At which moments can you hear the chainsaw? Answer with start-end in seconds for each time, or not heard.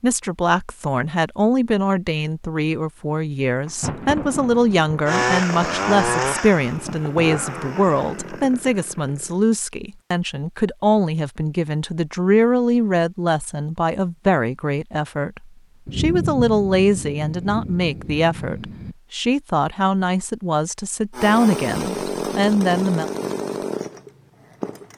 5.0-9.3, 21.1-24.9.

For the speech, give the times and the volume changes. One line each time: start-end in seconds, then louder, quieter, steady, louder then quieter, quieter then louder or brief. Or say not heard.
0.0-23.1 steady.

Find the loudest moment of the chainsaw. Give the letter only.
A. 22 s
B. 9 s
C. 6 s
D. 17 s
C.